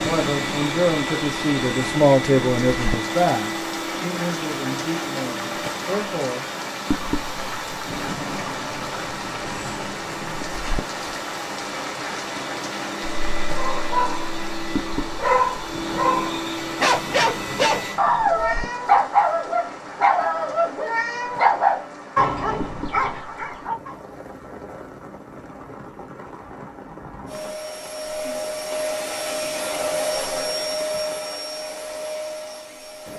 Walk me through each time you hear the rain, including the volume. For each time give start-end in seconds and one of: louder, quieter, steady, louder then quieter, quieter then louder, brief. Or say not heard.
0.0-33.1 quieter.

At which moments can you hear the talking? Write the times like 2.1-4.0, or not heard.
0.0-6.5.